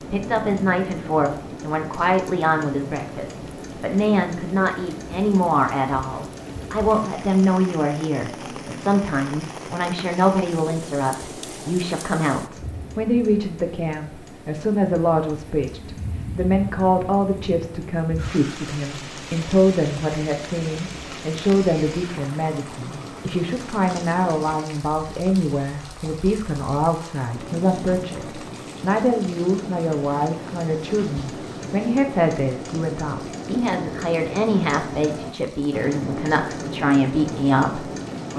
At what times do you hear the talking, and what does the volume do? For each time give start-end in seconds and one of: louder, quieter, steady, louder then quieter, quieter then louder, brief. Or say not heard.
0.0-38.3 steady.